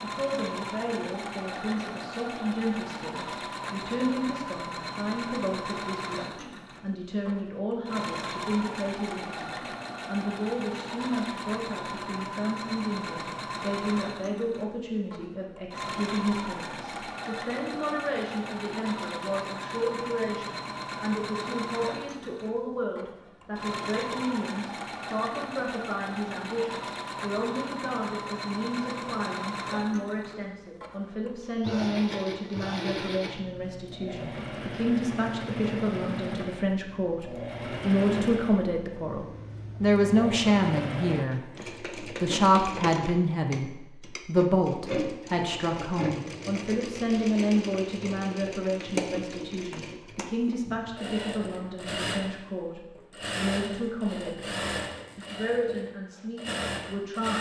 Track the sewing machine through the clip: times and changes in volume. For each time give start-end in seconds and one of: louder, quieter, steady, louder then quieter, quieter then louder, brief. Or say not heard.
0.0-57.3 steady.